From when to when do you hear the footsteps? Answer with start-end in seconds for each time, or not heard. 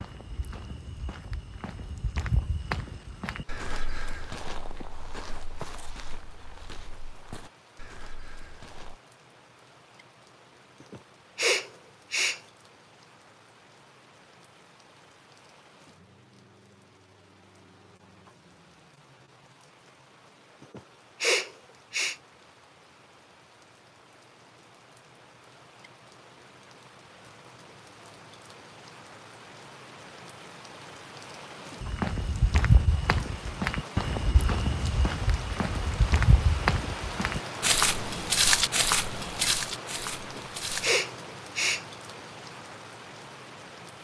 0.0-8.9, 31.8-41.0.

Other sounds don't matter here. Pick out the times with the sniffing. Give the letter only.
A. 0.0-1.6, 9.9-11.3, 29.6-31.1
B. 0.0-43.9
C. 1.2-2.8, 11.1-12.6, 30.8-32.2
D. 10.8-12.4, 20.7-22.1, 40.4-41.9
D.